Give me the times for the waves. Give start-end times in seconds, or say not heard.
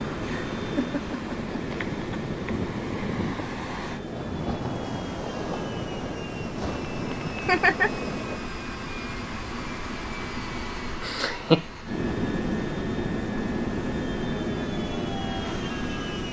0.0-8.4.